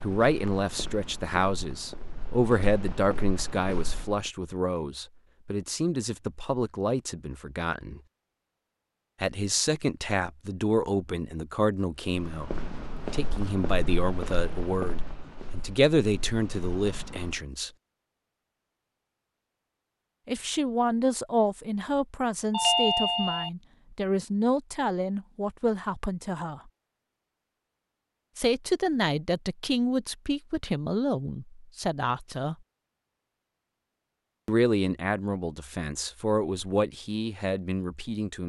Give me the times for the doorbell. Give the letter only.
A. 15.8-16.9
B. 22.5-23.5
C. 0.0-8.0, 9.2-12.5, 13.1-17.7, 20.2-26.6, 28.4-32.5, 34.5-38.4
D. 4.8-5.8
B.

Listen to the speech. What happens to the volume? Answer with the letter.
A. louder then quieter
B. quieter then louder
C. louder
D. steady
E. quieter
D.